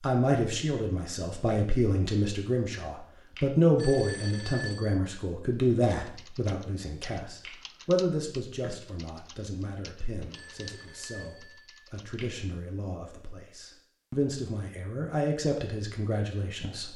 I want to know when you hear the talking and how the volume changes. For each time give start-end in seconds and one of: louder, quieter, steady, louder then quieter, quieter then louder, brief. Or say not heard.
0.0-16.9 quieter then louder.